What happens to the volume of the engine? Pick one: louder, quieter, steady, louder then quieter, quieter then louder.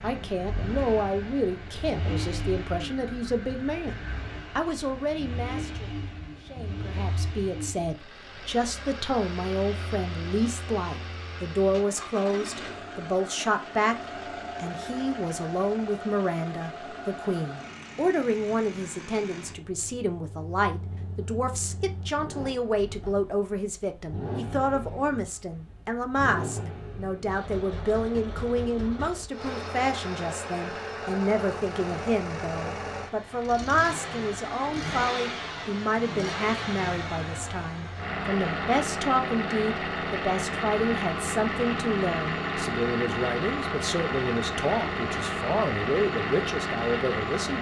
louder.